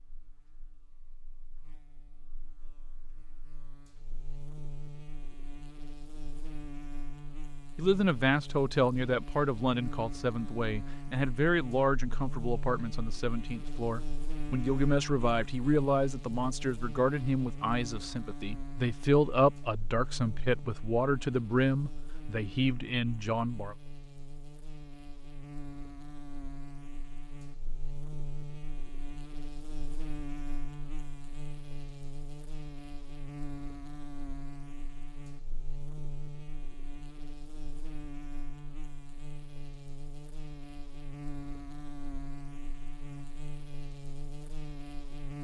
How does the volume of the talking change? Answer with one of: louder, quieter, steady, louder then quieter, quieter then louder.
steady.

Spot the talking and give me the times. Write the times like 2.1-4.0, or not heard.
7.8-23.8.